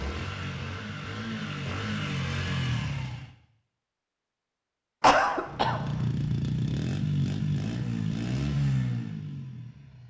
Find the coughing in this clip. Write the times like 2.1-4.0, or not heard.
5.0-5.8.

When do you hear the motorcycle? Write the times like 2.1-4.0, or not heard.
0.0-3.4, 5.5-10.0.